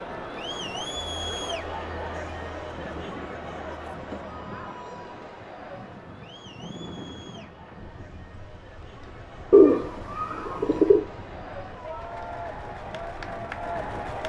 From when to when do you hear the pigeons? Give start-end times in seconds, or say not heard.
9.5-11.1.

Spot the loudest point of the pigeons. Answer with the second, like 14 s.
10 s.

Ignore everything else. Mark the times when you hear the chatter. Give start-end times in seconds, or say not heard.
0.0-14.2.